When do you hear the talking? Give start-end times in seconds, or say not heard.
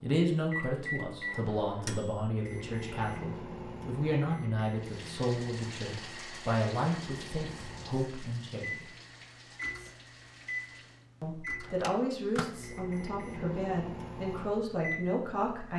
0.0-8.8, 11.2-15.7.